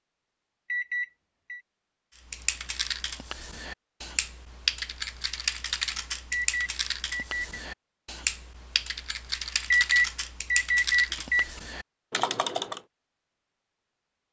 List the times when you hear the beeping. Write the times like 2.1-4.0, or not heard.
0.7-1.6, 6.3-7.5, 9.7-11.5.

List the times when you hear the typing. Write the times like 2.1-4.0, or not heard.
2.3-12.8.